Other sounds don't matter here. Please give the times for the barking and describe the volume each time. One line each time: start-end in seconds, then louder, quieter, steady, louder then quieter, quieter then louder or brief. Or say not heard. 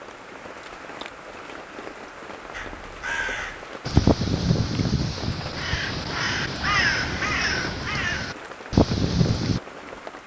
not heard.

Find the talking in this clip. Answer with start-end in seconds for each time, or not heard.
not heard.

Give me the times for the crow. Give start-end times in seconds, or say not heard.
2.5-9.6.